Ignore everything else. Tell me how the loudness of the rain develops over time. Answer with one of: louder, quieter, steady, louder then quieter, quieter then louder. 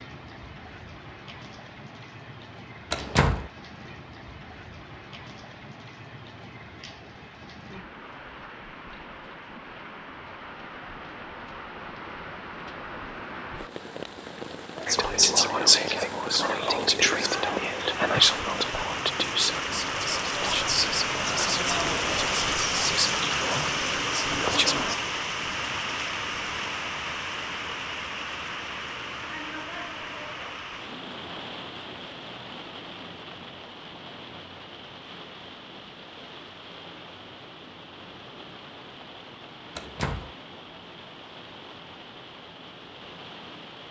louder then quieter.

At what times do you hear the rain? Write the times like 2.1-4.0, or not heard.
0.0-43.8.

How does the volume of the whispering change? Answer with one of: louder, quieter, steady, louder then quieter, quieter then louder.
quieter.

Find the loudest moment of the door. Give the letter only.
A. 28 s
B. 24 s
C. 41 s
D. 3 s
D.